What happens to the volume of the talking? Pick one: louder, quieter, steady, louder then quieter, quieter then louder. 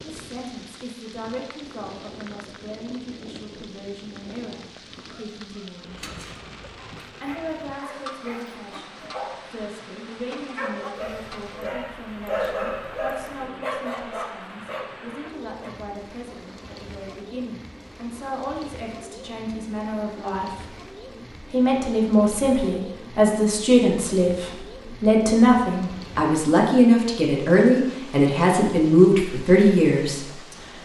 louder.